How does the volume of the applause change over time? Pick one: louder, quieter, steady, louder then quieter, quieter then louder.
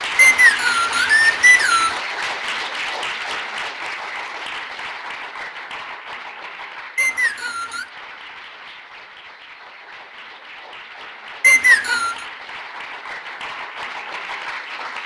quieter then louder.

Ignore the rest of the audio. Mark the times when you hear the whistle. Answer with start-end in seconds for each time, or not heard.
0.1-2.0, 7.0-7.9, 11.4-12.2.